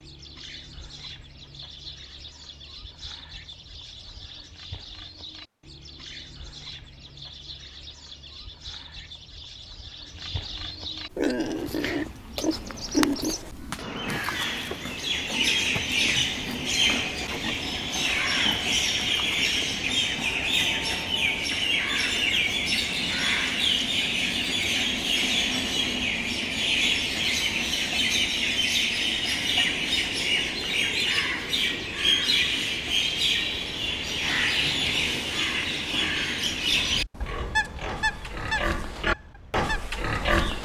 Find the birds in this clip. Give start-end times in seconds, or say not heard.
0.0-40.5.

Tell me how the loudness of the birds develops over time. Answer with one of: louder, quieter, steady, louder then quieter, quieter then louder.
louder.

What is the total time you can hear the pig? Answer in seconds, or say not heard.
12 s.